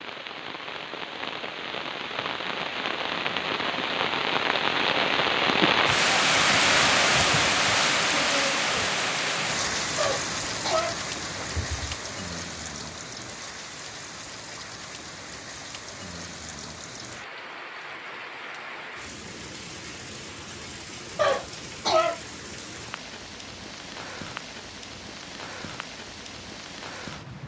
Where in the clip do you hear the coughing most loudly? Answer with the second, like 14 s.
22 s.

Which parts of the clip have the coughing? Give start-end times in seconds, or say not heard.
9.9-11.9, 21.1-22.2.